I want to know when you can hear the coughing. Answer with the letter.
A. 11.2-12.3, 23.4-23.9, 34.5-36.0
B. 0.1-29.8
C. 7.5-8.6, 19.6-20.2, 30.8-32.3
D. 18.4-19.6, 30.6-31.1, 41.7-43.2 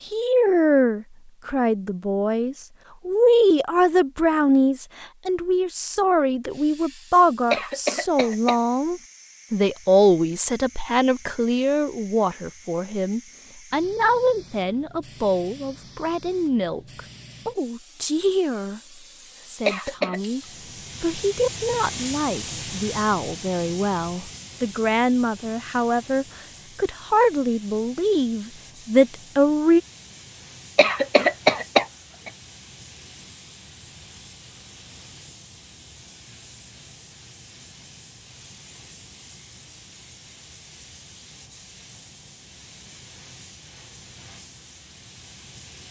C.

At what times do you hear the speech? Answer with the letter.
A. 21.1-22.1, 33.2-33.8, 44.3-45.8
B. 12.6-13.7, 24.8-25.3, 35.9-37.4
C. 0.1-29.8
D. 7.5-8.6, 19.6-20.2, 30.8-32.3
C.